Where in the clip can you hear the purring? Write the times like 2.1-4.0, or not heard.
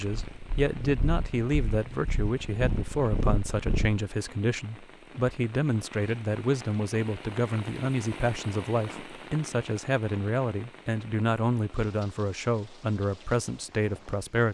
0.1-4.0.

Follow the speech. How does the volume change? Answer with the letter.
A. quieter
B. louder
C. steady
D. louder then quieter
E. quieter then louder
C.